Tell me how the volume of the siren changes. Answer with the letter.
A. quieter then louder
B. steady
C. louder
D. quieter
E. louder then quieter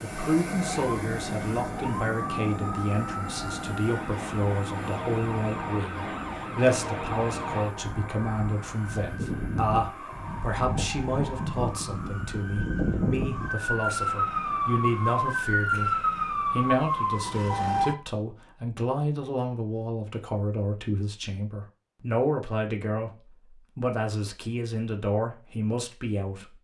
C.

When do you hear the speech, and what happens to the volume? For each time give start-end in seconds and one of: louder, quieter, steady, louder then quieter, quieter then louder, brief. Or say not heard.
0.0-15.9 steady
16.5-26.5 steady.